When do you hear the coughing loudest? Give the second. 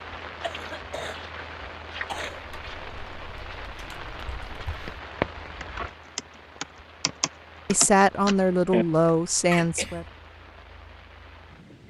10 s.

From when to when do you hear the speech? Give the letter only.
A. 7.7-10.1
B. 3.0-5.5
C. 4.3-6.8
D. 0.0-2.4
A.